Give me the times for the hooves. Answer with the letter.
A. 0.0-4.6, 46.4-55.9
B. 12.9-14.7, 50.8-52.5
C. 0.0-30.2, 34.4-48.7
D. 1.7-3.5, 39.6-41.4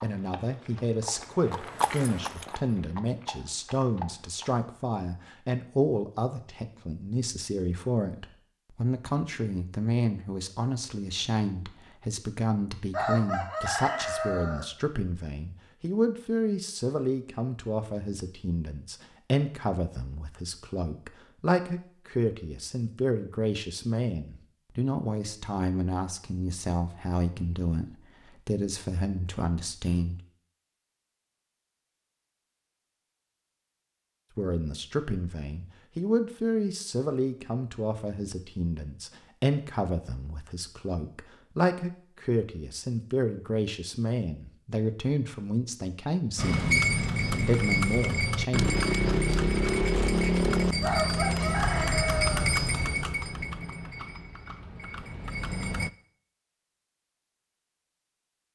A.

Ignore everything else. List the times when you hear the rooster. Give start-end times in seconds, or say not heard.
12.9-14.7, 50.8-52.5.